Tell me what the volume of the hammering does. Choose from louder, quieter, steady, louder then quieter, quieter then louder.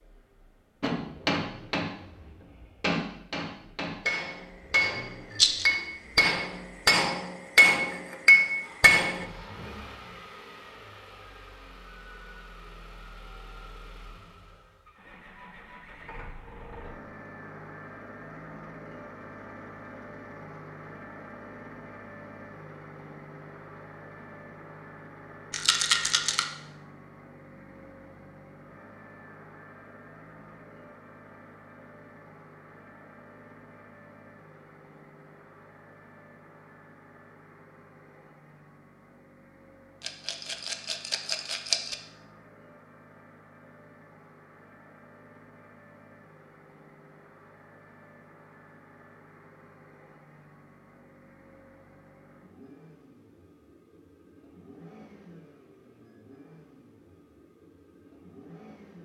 louder.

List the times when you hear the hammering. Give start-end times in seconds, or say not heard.
0.8-9.2.